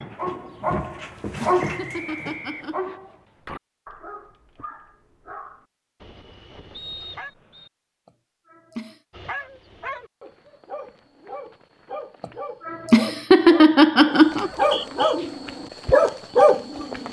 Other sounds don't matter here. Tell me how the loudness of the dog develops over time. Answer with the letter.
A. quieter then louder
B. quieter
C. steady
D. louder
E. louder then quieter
A.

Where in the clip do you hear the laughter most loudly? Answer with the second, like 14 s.
13 s.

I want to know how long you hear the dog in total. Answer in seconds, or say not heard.
15 s.